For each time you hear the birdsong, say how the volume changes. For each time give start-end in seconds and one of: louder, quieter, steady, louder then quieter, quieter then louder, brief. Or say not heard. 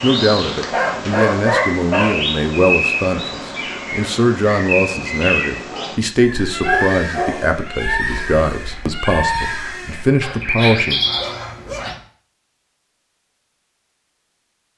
0.0-11.9 steady.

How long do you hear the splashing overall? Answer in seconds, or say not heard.
not heard.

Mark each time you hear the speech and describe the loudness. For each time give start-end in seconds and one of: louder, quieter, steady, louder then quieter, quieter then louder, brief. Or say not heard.
0.0-11.0 steady.